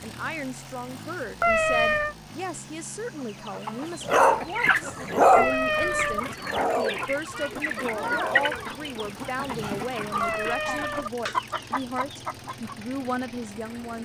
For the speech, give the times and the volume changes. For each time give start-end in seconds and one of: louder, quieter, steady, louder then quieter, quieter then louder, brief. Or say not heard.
0.0-14.0 steady.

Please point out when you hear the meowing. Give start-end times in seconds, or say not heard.
1.4-2.1, 5.3-6.2, 10.2-11.1.